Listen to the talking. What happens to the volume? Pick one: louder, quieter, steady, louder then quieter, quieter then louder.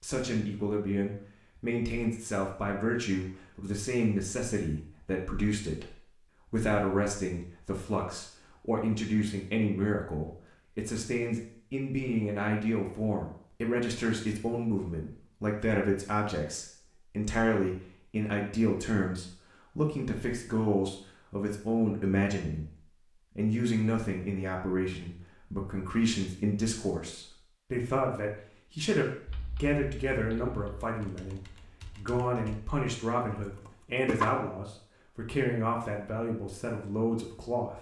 steady.